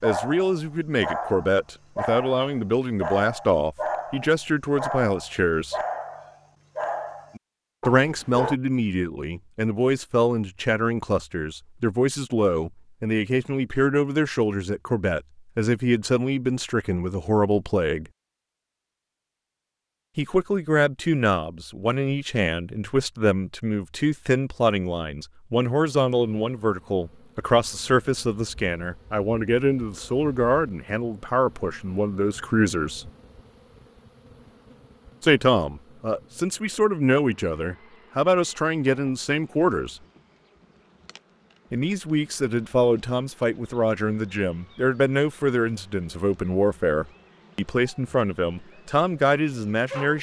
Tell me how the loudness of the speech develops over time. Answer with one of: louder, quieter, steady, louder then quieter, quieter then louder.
steady.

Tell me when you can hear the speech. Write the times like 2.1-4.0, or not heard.
0.0-5.8, 7.8-18.1, 20.1-33.1, 35.2-40.0, 41.7-50.1.